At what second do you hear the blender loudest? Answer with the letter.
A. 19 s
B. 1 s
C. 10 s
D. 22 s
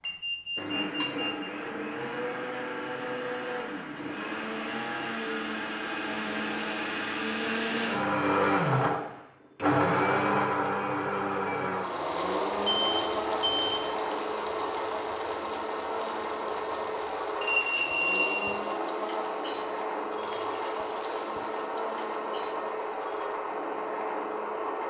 C.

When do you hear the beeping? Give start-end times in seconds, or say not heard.
0.1-1.4, 12.7-13.9, 17.4-18.4.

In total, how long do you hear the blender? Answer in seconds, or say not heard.
25 s.